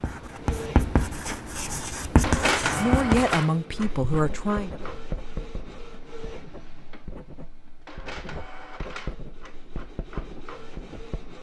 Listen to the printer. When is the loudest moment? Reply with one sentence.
The volume of the printer peaks at 3 seconds.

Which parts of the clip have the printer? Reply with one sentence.
You can hear the printer from 0.0 to 11.3 s.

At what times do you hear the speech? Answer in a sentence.
You can hear the speech from 2.8 to 4.7 s.